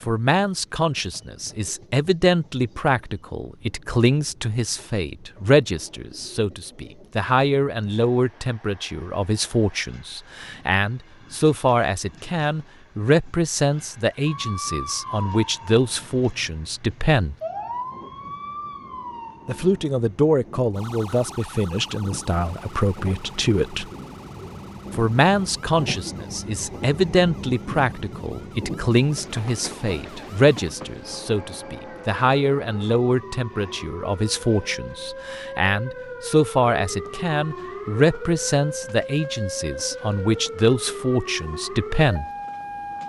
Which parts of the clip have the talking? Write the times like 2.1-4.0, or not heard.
0.0-17.4, 19.4-23.9, 24.9-42.2.